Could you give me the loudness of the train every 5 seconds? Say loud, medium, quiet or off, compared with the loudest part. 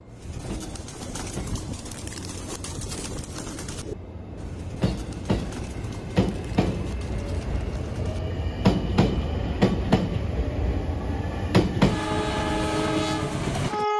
quiet, loud, loud.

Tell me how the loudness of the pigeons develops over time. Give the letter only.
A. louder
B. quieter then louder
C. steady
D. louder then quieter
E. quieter
E.